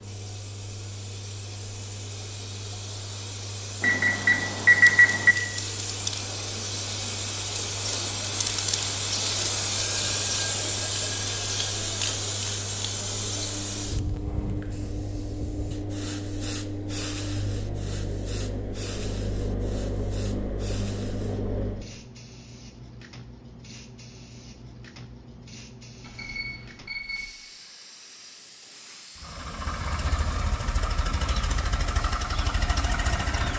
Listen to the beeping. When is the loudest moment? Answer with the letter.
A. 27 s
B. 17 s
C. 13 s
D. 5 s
D.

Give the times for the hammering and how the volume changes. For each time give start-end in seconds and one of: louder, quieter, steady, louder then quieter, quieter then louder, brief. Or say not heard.
not heard.